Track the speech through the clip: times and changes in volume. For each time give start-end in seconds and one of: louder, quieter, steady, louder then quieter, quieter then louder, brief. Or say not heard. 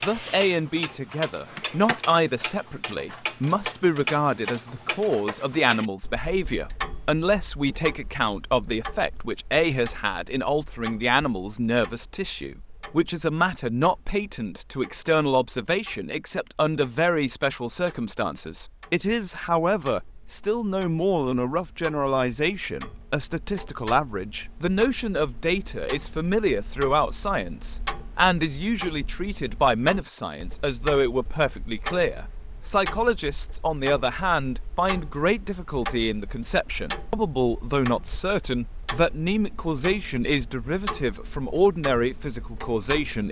0.0-43.2 steady.